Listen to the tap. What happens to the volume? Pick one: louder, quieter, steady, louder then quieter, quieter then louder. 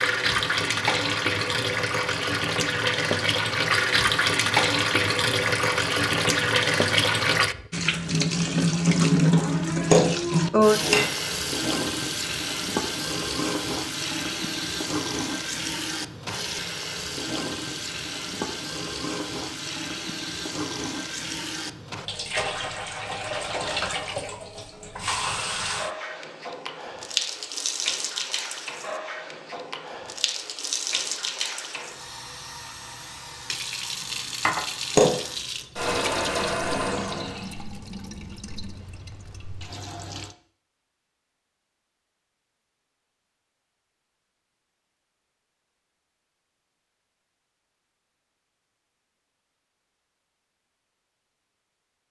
quieter.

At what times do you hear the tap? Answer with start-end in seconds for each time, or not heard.
0.0-40.4.